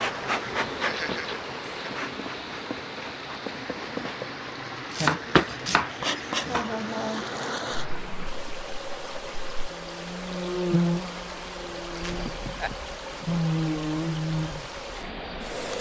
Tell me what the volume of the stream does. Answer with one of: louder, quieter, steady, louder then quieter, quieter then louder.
steady.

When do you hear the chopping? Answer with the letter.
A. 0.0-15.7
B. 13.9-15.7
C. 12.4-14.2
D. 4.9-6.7
D.